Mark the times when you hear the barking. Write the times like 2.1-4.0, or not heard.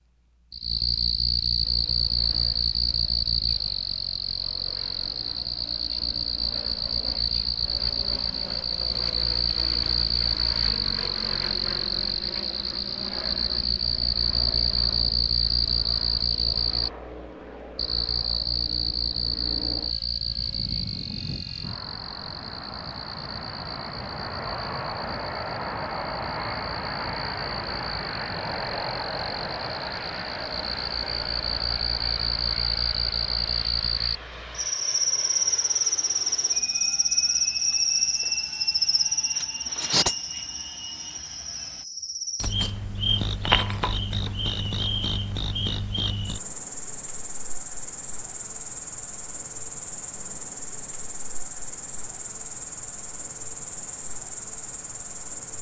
not heard.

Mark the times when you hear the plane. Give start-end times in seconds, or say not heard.
1.6-41.9.